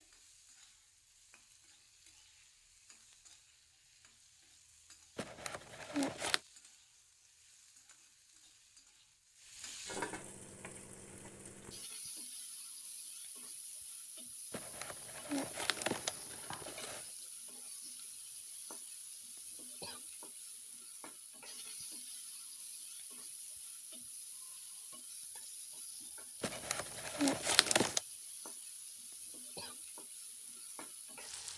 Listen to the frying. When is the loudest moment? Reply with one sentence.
The loudest moment of the frying is at 10 seconds.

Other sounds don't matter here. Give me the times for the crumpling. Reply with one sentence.
The crumpling can be heard from 5.2 to 6.4 s, from 14.5 to 17.1 s and from 26.4 to 28.0 s.